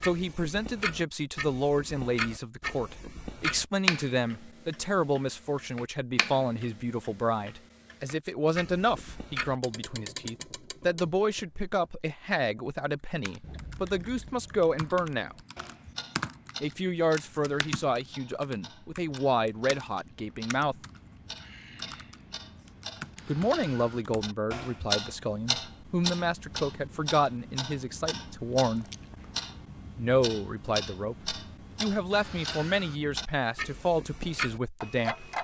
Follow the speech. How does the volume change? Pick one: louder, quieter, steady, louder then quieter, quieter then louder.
steady.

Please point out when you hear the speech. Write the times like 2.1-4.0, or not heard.
0.0-15.3, 16.6-20.8, 23.2-28.9, 29.9-35.3.